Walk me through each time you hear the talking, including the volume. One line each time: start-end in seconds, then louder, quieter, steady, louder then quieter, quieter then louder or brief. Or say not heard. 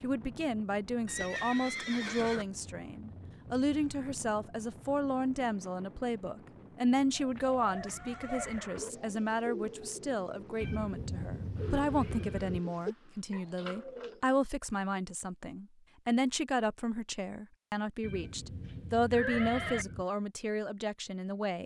0.0-21.6 steady.